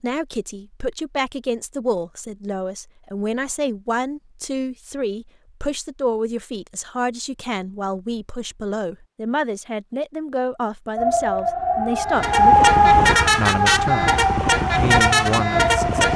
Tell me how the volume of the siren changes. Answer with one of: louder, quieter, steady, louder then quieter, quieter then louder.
louder then quieter.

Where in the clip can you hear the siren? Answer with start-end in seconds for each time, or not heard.
10.9-16.1.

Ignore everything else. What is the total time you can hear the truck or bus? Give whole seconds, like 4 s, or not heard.
4 s.